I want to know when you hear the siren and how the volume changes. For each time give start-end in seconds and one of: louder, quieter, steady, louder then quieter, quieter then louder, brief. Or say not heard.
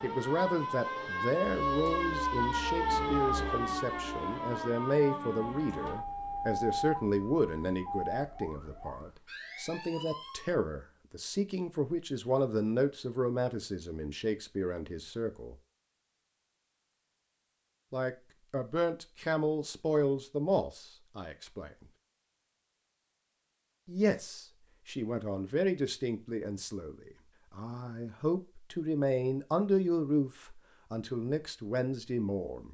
0.0-10.6 quieter.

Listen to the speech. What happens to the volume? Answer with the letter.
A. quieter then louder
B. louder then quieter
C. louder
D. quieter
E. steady
E.